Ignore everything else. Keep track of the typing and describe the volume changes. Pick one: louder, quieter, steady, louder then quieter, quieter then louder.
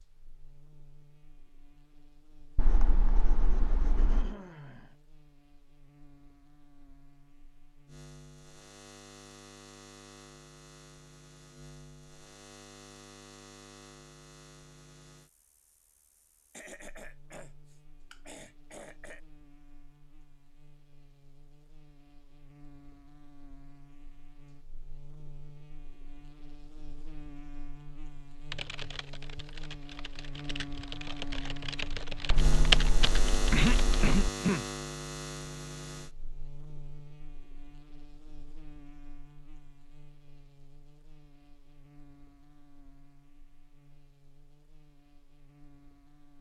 louder.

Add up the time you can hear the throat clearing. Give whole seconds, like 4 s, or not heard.
5 s.